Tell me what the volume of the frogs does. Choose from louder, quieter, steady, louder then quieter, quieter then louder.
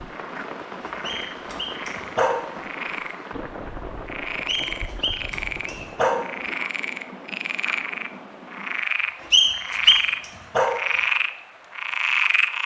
louder.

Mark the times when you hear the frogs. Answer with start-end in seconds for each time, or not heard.
0.0-12.6.